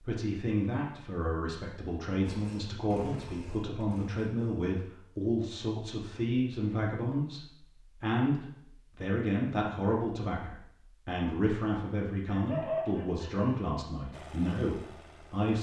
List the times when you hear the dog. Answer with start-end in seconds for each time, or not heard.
12.2-13.5.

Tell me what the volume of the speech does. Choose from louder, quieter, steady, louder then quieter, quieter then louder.
steady.